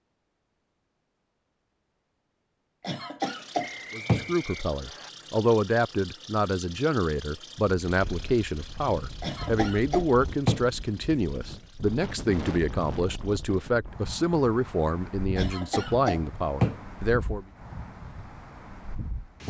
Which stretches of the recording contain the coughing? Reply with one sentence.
The coughing can be heard from 2.8 to 4.3 s, from 9.2 to 10.7 s and from 15.3 to 16.8 s.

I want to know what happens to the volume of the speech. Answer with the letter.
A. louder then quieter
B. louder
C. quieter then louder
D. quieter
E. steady
E.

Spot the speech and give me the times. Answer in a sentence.
The speech can be heard from 3.9 to 17.4 s.